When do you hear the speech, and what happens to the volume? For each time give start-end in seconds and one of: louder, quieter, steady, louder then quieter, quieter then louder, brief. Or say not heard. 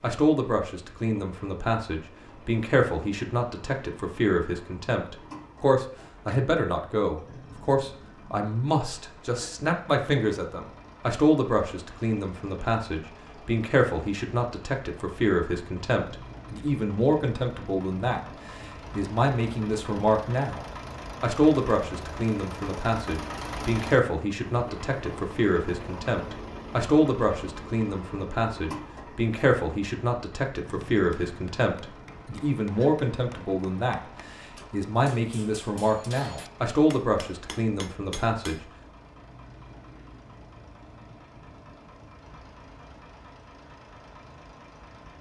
0.0-38.6 steady.